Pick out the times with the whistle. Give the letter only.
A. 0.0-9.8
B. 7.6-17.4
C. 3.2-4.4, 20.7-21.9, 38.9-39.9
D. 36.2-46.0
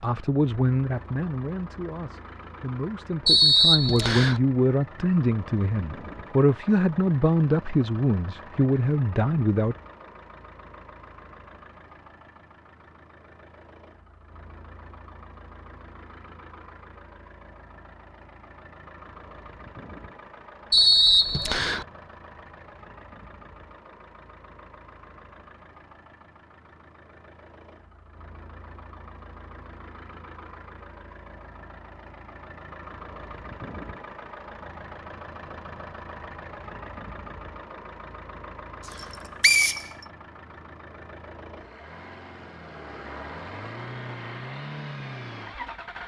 C.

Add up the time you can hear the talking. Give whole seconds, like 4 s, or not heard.
10 s.